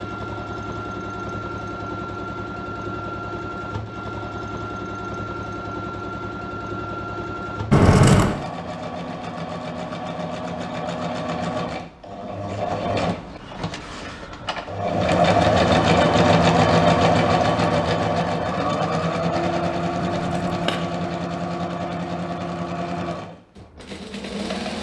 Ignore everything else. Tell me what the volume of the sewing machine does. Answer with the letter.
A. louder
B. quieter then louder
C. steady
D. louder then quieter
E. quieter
D.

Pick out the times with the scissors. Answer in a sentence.
You can hear the scissors from 7.7 to 8.3 s and from 19.9 to 20.8 s.